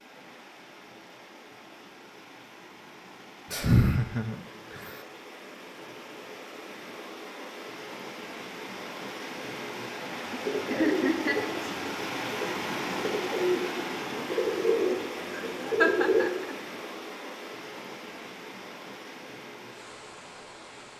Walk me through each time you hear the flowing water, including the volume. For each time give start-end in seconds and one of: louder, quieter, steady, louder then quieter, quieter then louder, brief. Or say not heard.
0.0-20.9 louder then quieter.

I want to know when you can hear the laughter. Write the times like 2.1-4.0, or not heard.
3.5-4.9, 10.7-11.5, 15.3-16.6.